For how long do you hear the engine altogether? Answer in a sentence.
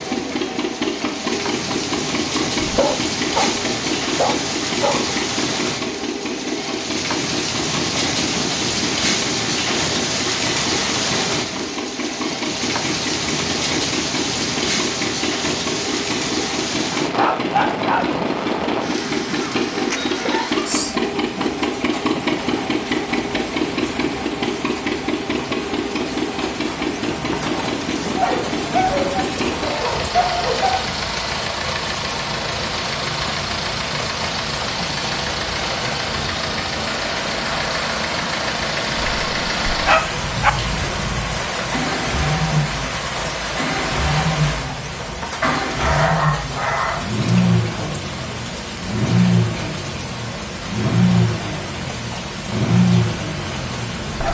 You can hear the engine for 54 seconds altogether.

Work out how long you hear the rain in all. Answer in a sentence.
The rain can be heard for 54 seconds in total.